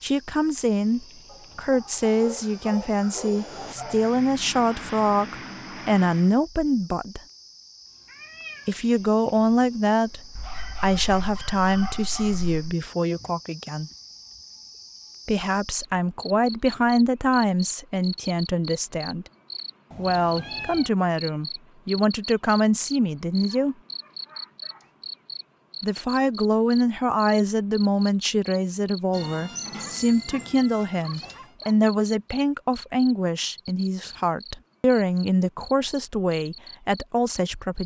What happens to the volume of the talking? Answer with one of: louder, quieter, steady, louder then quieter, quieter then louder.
steady.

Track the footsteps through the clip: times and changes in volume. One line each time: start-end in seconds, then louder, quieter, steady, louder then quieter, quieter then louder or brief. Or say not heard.
not heard.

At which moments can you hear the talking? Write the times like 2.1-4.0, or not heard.
0.0-7.2, 8.7-13.9, 15.2-19.2, 19.9-23.8, 25.8-37.8.